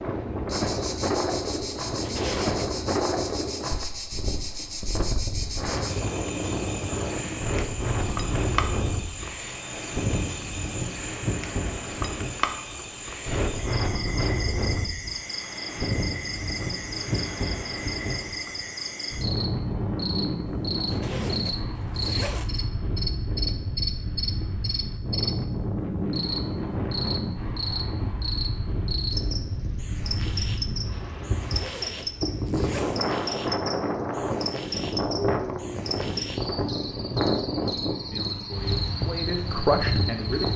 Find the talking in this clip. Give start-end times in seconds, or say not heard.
38.1-40.5.